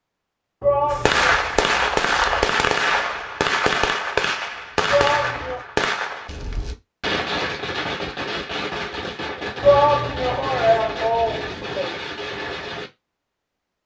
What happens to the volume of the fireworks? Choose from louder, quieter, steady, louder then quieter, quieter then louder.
quieter.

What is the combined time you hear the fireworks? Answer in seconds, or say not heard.
12 s.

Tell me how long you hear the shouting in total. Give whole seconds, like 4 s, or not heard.
4 s.